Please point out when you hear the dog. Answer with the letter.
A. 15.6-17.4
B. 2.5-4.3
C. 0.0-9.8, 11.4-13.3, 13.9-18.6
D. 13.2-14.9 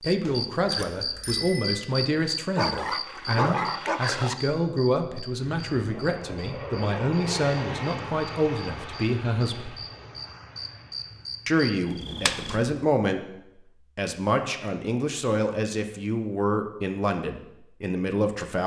B.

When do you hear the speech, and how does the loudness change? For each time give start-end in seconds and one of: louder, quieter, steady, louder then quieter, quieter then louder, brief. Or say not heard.
0.0-9.8 steady
11.4-13.3 brief
13.9-18.6 steady.